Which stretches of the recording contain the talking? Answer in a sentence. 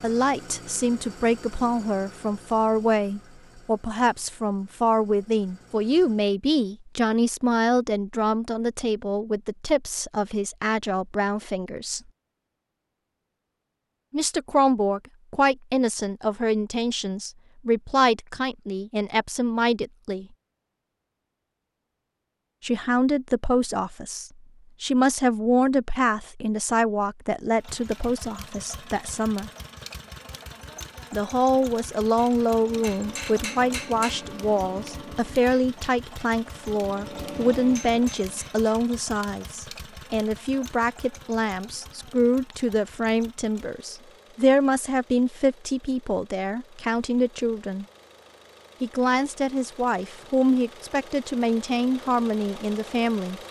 You can hear the talking from 0.0 to 12.0 s, from 14.1 to 20.2 s, from 22.6 to 29.5 s, from 31.1 to 47.9 s and from 48.8 to 53.4 s.